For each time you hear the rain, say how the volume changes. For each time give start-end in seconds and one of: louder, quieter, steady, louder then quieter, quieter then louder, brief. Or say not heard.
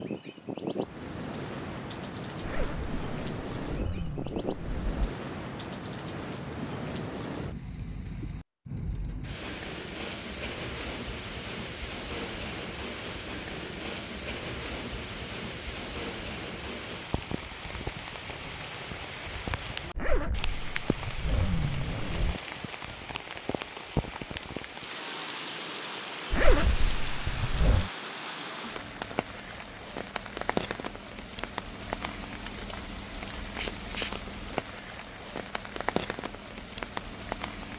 0.0-37.7 steady.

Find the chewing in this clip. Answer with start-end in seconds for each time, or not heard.
not heard.